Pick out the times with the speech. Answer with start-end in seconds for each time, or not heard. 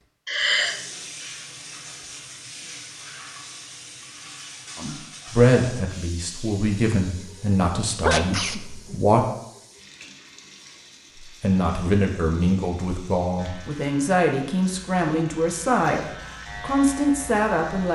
4.8-9.2, 11.2-17.9.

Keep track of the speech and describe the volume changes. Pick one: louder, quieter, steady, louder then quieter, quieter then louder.
steady.